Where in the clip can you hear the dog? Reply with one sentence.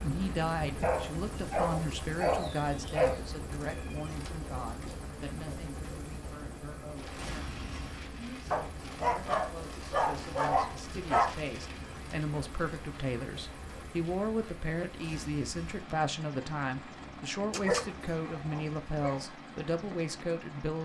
The dog can be heard from 0.8 to 3.2 s, from 8.5 to 11.3 s and from 17.5 to 19.2 s.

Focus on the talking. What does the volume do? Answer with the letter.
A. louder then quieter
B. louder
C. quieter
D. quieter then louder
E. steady
D.